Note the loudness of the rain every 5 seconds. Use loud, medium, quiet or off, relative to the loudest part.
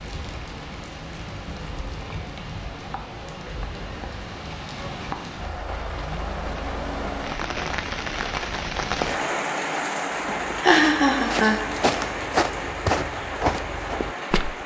medium, loud, loud.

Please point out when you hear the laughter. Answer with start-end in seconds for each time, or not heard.
10.2-12.1.